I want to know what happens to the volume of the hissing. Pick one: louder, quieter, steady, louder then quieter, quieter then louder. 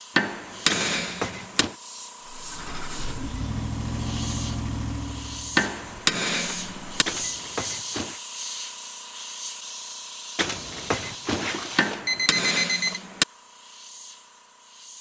louder then quieter.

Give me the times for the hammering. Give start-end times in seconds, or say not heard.
0.1-1.6, 5.5-7.0, 11.8-13.2.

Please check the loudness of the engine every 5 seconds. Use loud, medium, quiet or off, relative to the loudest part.
loud, medium, off.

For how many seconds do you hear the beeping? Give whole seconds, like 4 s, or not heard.
5 s.